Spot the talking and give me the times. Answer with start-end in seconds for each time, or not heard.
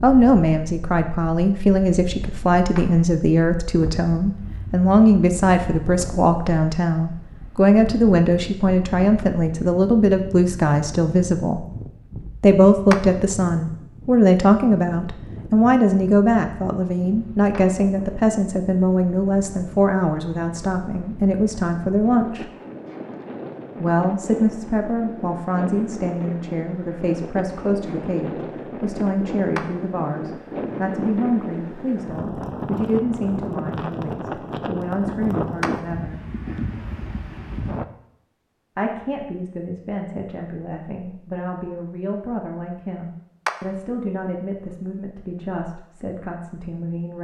0.0-11.7, 12.4-22.4, 23.8-36.2, 38.8-47.1.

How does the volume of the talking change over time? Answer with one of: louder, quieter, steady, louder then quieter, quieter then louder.
quieter.